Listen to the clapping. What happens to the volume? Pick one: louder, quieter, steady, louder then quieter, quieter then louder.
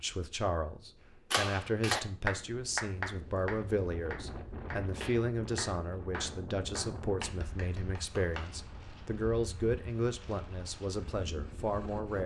quieter.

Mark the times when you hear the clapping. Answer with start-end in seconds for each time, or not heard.
1.3-8.4.